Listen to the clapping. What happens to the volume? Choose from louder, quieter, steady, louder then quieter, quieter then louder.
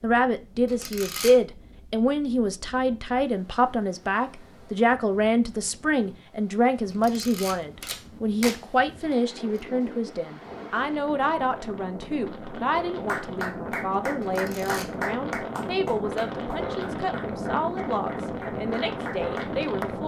quieter then louder.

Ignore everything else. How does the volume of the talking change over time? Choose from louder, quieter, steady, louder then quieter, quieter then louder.
quieter.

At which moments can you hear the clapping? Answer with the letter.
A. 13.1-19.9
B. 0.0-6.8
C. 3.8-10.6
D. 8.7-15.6
A.